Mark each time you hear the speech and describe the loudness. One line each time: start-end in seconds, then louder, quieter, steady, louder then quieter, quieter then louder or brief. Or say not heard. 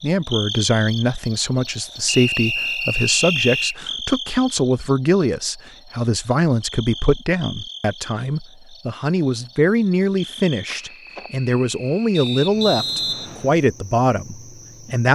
0.0-15.1 steady.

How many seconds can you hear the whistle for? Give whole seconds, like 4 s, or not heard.
3 s.